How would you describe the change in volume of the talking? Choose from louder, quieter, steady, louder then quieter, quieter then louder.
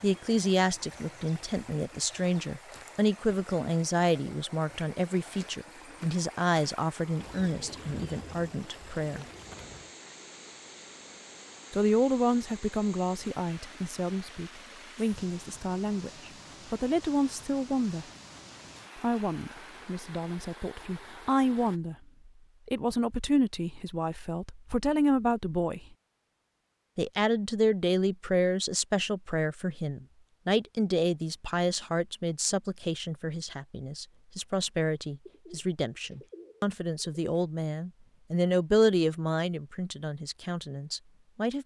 steady.